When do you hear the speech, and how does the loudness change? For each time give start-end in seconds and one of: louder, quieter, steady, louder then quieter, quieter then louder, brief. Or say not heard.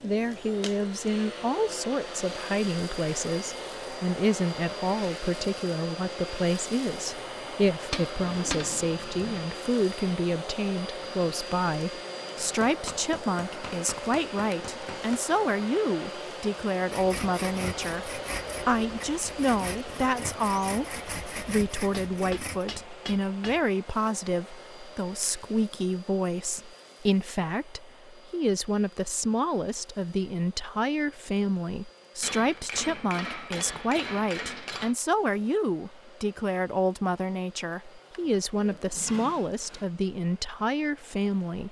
0.0-41.6 steady.